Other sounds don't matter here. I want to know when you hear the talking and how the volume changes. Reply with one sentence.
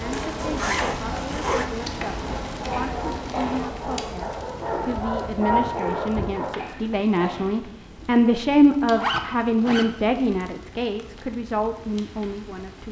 You can hear the talking from 0.0 to 12.8 s, getting louder then quieter.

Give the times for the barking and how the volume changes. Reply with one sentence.
The barking can be heard from 0.0 to 6.7 s, getting louder.